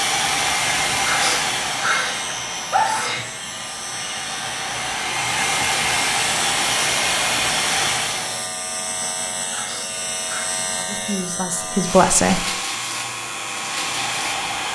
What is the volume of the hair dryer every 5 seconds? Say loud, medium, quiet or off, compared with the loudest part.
loud, loud, medium.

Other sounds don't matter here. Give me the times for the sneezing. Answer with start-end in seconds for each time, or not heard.
1.1-3.2, 9.5-10.6.